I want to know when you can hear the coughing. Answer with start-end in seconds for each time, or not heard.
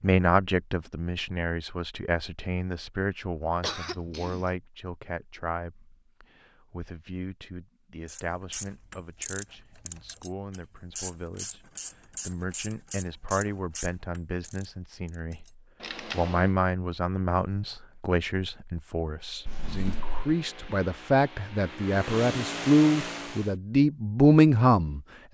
3.6-4.5.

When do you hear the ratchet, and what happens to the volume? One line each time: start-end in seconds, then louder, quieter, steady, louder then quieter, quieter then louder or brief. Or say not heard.
8.1-16.6 steady.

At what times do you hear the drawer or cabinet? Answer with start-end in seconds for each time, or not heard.
19.4-20.2.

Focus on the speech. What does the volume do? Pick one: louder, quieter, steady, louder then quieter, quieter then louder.
quieter then louder.